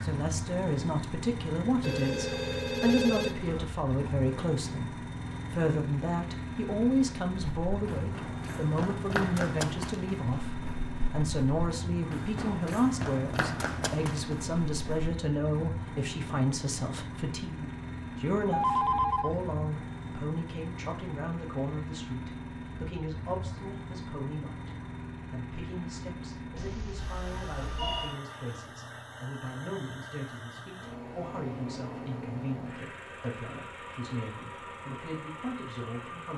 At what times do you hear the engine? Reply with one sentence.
You can hear the engine from 0.0 to 36.3 s.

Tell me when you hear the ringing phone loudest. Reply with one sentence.
The loudest moment of the ringing phone is at 19 seconds.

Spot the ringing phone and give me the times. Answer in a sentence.
The ringing phone can be heard from 1.8 to 3.7 s, from 18.5 to 19.4 s and from 26.6 to 28.1 s.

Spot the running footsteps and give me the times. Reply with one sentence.
The running footsteps can be heard from 7.3 to 15.2 s.